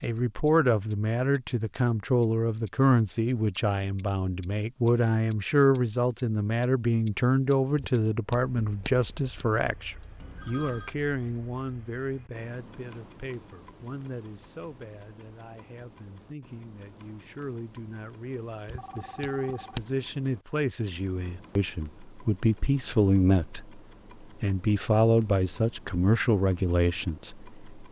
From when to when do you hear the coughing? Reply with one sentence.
You can't hear the coughing here.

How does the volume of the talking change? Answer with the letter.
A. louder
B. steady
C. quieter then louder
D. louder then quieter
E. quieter
C.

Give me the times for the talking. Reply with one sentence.
You can hear the talking from 0.0 to 27.8 s.